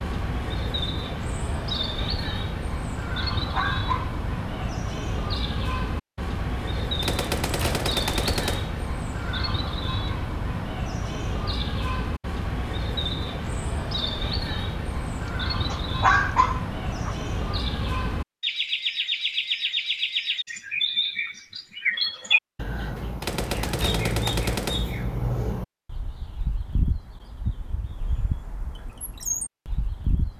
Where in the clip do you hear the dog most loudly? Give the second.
16 s.